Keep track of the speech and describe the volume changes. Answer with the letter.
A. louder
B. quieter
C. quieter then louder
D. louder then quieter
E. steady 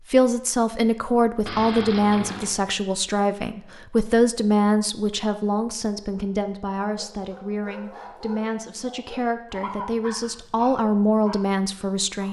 C.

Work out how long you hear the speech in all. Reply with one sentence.
You can hear the speech for 12 seconds altogether.